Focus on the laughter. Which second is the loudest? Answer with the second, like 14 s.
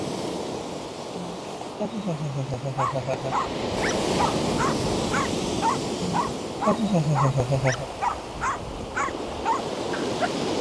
7 s.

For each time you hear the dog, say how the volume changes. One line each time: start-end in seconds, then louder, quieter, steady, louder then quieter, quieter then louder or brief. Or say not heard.
2.8-10.3 steady.